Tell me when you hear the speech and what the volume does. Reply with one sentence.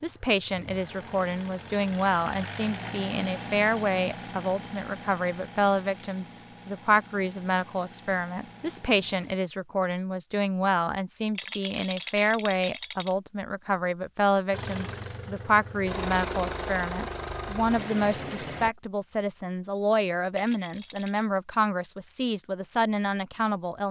You can hear the speech from 0.0 to 23.8 s, at a steady volume.